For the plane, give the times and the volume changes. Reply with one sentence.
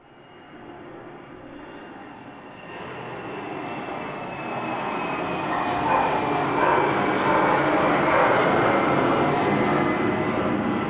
You can hear the plane from 0.0 to 10.8 s, getting louder.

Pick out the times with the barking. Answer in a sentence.
The barking can be heard from 5.5 to 8.4 s.